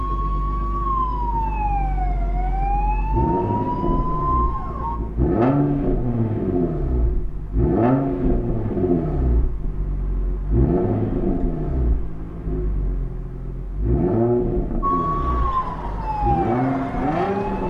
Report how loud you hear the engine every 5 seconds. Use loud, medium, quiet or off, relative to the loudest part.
medium, loud, loud, loud.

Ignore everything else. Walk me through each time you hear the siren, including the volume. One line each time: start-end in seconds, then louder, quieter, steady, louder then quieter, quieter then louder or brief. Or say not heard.
0.0-5.0 steady
14.8-17.6 brief.